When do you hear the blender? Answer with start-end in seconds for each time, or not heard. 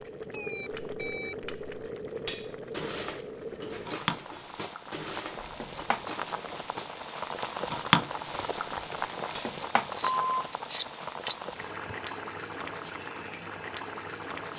not heard.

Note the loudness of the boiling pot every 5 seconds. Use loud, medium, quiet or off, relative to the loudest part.
medium, loud, medium.